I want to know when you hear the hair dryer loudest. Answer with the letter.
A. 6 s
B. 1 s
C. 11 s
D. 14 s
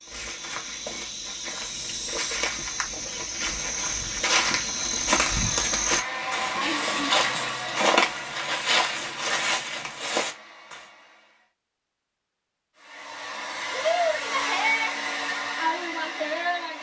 D.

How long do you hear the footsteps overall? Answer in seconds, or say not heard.
11 s.